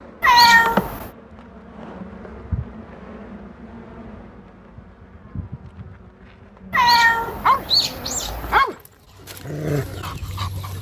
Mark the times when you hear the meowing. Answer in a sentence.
You can hear the meowing from 0.2 to 1.1 s and from 6.7 to 8.7 s.